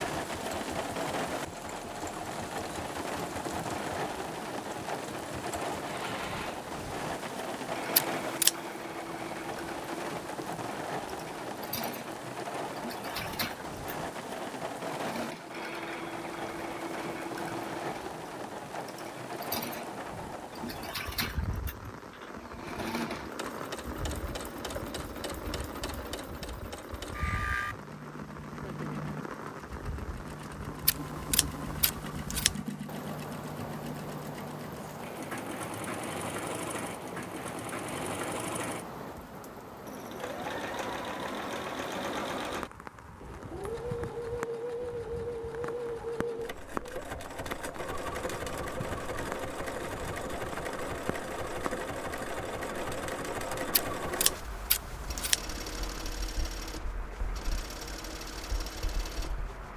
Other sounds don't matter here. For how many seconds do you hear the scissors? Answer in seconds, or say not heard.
4 s.